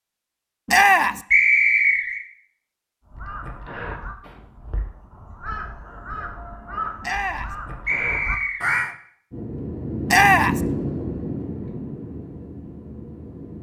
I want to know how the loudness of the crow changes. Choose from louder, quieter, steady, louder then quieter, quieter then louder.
quieter then louder.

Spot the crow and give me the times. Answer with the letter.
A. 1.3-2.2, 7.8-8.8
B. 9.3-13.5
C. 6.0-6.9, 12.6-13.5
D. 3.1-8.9
D.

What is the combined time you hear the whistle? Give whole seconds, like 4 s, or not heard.
2 s.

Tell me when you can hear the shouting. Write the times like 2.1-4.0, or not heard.
0.7-1.2, 7.0-7.5, 10.1-10.6.